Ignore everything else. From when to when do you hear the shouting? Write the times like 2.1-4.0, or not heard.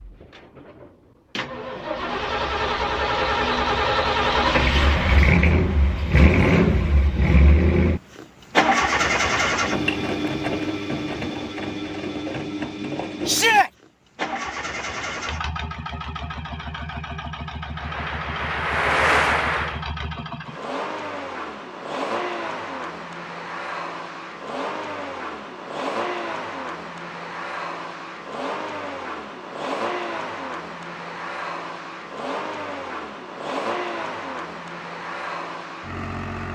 13.2-13.7.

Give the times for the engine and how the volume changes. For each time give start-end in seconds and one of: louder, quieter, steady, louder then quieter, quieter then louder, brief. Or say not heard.
0.0-36.5 quieter.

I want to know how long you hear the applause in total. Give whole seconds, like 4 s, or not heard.
2 s.